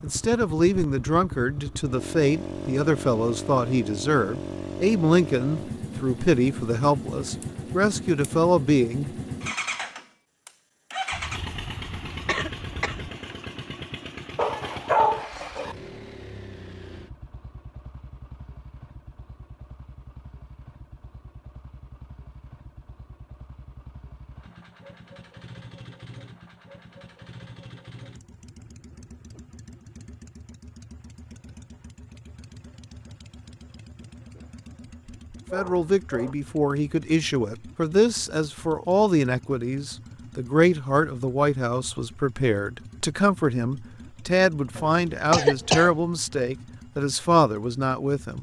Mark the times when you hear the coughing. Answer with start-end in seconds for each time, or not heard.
11.1-13.1, 44.8-45.9.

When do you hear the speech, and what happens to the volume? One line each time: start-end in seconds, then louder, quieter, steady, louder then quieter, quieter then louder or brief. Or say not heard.
0.0-9.1 steady
35.5-48.3 steady.